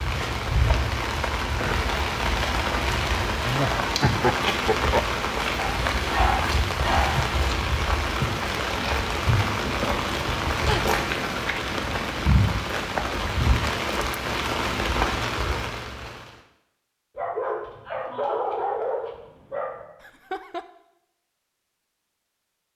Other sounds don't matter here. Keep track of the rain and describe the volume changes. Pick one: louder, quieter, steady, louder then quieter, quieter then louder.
steady.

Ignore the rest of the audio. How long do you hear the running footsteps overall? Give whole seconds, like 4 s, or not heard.
not heard.